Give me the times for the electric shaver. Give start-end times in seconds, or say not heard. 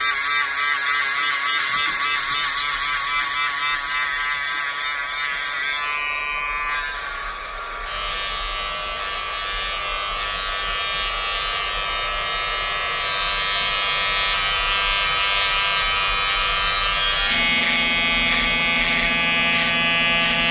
0.0-20.4.